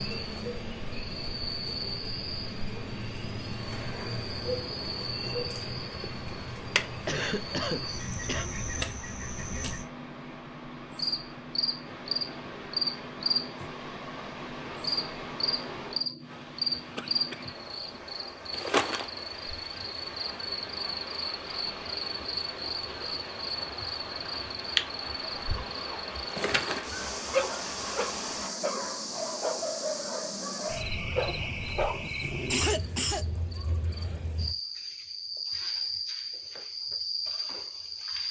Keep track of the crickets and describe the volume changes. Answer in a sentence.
The volume of the crickets stays about the same.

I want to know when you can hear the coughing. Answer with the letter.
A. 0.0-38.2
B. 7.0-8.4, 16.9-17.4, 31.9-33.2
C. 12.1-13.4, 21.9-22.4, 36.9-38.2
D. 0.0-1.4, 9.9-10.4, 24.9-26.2
B.